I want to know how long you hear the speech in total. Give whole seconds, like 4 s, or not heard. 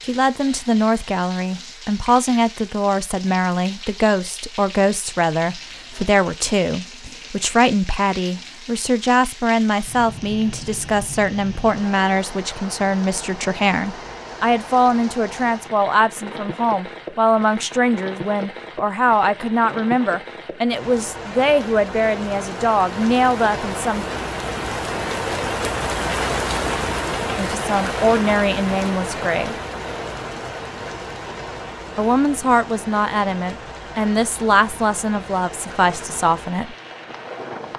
31 s.